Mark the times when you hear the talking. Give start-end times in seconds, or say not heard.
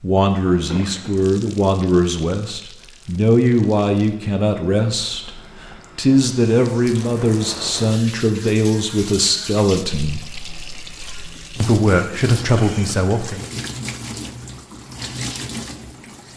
0.0-5.3, 6.0-10.2, 11.6-13.4.